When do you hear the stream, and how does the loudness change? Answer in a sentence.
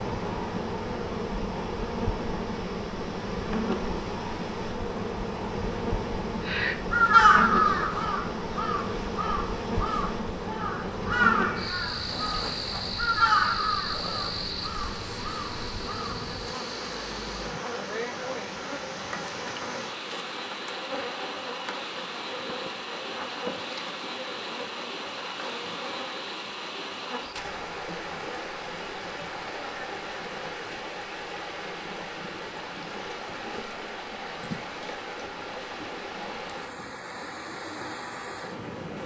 The stream can be heard from 0.0 to 39.0 s, at a steady volume.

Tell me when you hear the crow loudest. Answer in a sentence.
The loudest moment of the crow is at 7 seconds.